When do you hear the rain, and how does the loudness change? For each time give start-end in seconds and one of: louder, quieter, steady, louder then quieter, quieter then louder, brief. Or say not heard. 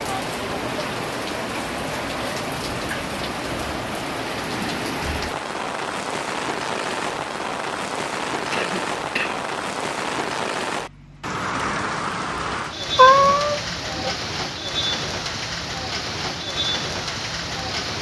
0.0-17.9 steady.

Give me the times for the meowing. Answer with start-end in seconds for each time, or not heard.
12.9-14.2.